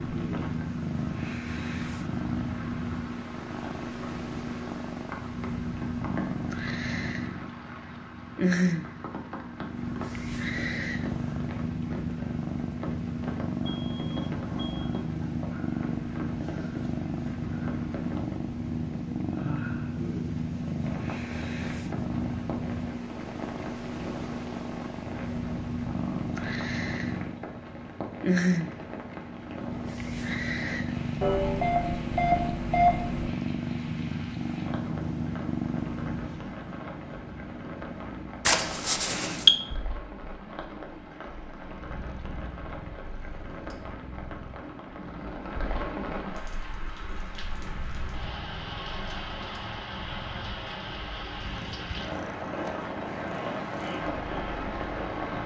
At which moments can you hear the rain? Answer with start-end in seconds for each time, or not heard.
0.0-55.4.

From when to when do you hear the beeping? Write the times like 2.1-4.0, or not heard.
13.7-14.9, 31.2-33.3, 38.5-39.5.